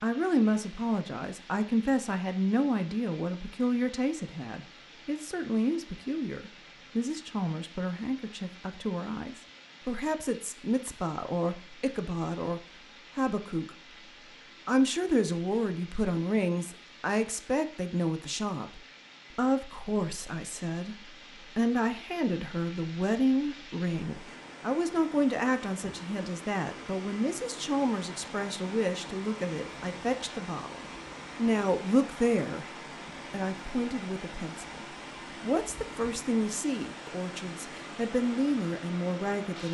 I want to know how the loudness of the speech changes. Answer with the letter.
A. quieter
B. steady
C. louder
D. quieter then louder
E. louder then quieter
B.